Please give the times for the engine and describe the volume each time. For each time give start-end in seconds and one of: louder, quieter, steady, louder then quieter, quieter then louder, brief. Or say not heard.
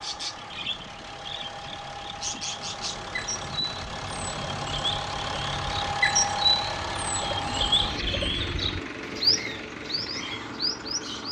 0.0-11.2 louder then quieter.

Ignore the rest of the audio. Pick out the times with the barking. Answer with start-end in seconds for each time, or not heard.
not heard.